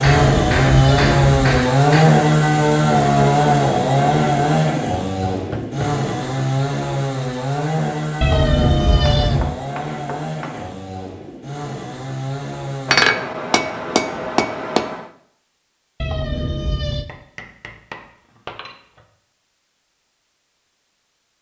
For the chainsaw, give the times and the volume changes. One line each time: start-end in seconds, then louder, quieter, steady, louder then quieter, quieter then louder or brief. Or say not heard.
0.0-13.2 quieter.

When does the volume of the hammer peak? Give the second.
13 s.